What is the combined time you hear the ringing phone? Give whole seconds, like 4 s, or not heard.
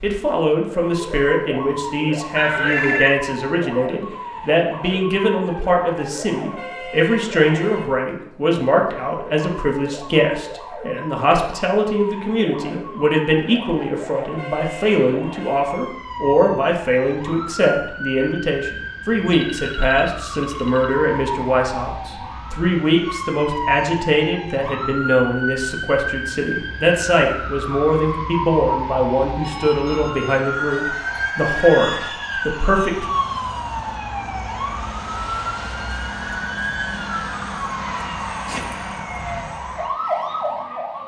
5 s.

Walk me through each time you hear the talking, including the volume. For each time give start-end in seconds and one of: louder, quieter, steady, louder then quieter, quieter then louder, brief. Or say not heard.
0.0-33.0 steady.